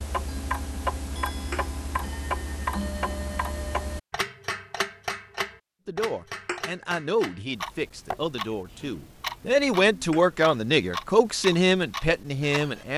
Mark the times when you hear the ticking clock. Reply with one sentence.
You can hear the ticking clock from 0.0 to 12.9 s.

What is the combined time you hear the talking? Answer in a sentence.
The talking can be heard for 7 seconds in total.